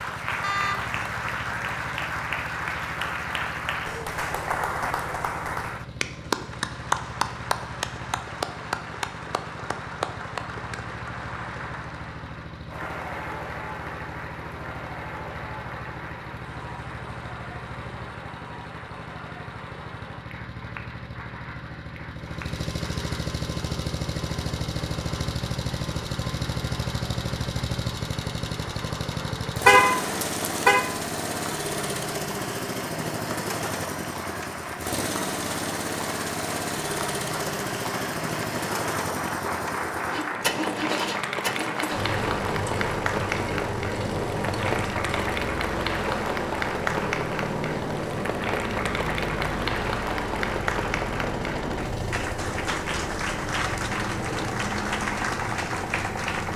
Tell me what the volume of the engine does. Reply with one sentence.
The volume of the engine goes up.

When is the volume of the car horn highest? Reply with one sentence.
The loudest moment of the car horn is at 30 seconds.